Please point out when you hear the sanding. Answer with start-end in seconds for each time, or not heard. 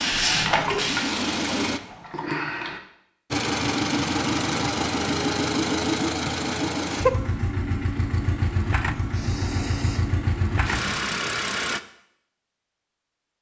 not heard.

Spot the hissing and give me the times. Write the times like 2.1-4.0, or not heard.
0.0-2.8, 8.9-11.0.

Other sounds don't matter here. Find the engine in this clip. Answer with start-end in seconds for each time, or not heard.
0.0-1.8, 3.3-11.8.